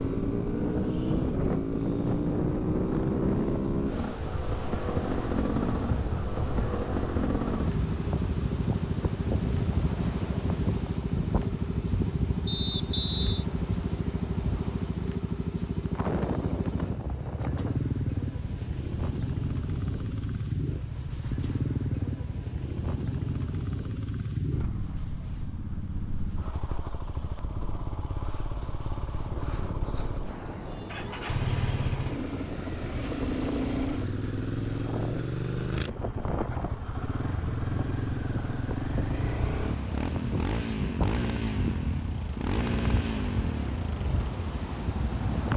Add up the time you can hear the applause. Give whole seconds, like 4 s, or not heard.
not heard.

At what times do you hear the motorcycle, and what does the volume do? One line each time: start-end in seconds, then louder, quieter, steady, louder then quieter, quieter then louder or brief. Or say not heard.
0.0-45.4 steady.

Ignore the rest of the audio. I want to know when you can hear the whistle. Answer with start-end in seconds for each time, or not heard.
12.4-13.4.